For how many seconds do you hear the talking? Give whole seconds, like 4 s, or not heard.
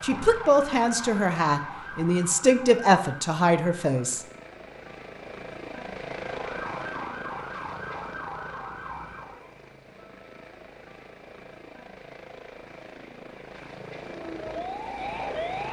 4 s.